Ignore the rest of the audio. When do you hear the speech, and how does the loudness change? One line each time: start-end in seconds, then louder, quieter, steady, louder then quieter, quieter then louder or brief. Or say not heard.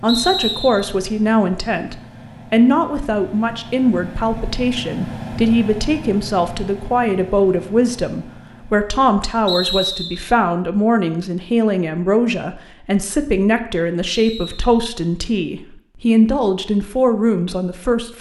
0.0-18.1 steady.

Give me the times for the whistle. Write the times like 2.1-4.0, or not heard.
0.1-0.9, 9.4-10.3, 14.1-14.8.